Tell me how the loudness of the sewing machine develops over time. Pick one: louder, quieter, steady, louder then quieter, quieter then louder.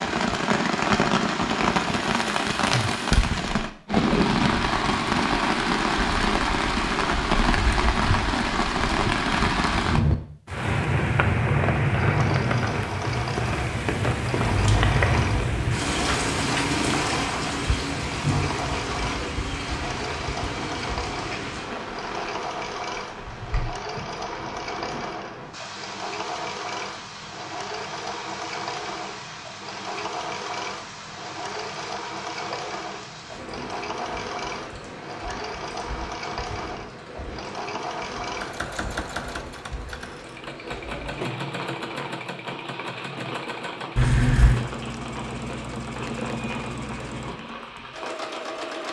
steady.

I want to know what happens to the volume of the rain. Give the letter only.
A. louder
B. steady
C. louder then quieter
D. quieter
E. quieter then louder
D.